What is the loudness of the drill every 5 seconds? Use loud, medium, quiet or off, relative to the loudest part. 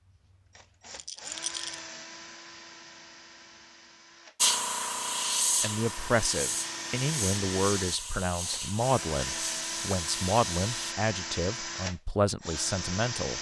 medium, loud, loud.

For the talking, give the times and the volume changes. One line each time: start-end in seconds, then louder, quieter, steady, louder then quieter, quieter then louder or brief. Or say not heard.
5.6-13.3 steady.